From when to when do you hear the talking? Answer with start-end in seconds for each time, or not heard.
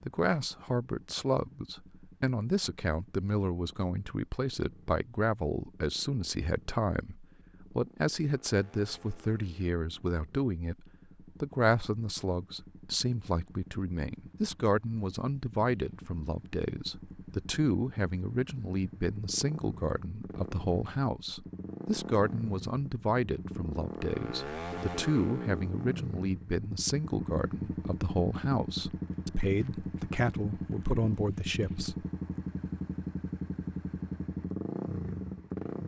0.0-32.0.